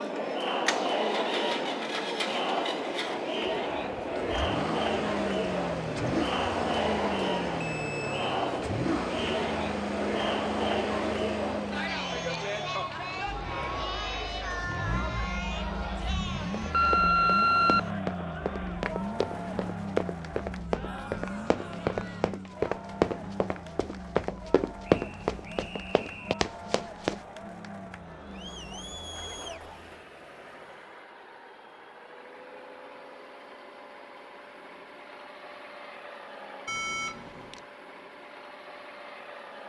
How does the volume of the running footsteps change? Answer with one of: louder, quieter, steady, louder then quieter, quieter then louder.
louder.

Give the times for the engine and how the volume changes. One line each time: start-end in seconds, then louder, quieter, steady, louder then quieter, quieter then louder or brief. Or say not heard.
0.0-39.6 quieter.